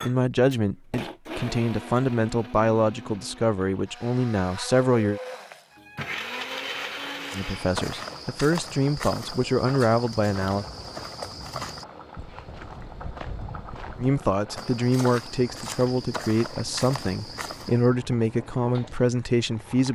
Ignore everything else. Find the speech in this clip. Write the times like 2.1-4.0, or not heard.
0.0-5.2, 7.3-10.7, 14.0-19.9.